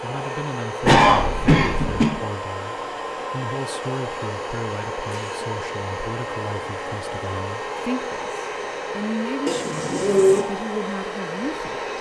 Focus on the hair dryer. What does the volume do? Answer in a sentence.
The loudness of the hair dryer stays about the same.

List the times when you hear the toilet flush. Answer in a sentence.
The toilet flush can't be heard in this clip.